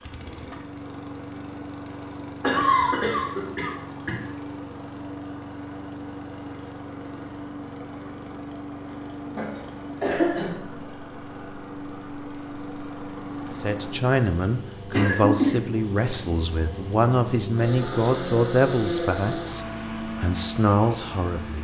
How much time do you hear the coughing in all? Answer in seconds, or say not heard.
4 s.